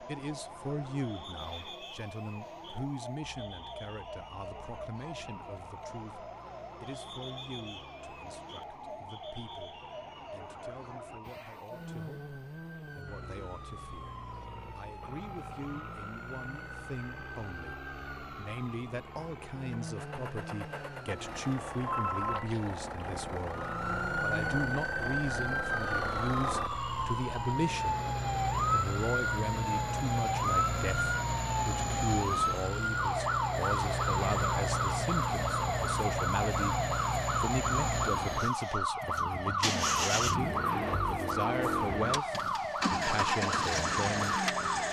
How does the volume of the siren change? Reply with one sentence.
The volume of the siren goes up.